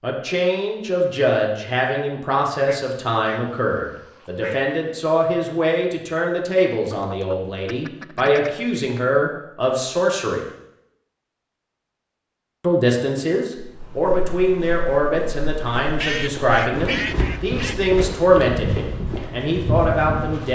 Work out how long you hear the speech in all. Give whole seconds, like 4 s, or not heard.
18 s.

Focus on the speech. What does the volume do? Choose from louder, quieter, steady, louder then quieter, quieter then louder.
steady.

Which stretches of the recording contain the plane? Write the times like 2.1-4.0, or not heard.
not heard.